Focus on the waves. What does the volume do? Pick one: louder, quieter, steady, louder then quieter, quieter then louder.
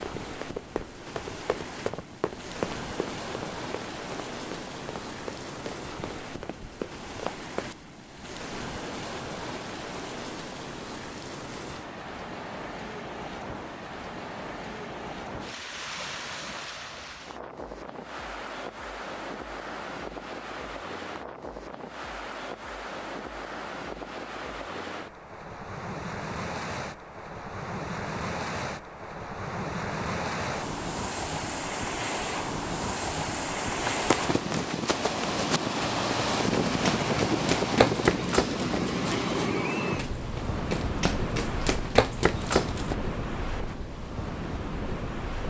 louder.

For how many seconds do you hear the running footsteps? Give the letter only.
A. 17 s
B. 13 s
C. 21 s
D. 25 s
A.